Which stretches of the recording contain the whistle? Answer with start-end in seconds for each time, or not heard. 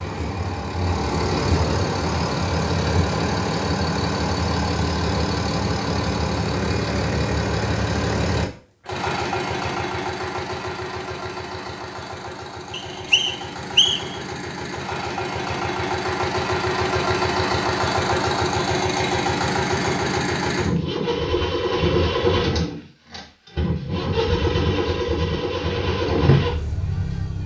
12.7-14.2.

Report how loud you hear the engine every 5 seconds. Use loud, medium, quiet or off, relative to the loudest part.
loud, loud, medium, loud, loud, loud.